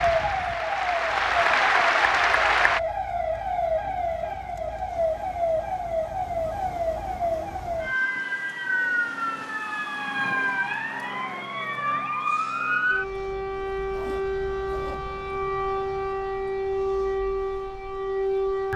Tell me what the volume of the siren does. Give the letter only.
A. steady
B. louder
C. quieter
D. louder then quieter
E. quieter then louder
A.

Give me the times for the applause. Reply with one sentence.
The applause can be heard from 0.0 to 2.8 s.